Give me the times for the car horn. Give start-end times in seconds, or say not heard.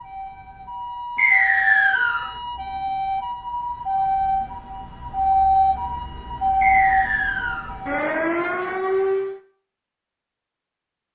not heard.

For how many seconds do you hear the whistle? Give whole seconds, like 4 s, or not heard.
2 s.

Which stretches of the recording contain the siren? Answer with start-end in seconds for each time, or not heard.
0.0-9.4.